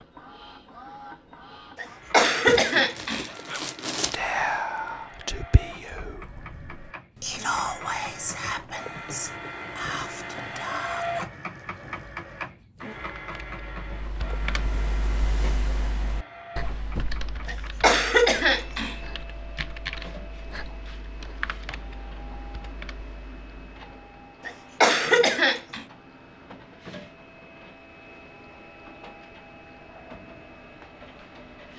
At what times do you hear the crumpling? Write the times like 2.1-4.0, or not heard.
2.5-4.2.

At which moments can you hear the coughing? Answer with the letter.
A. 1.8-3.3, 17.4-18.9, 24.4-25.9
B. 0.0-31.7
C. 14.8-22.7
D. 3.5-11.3
A.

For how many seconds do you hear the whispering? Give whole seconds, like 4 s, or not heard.
8 s.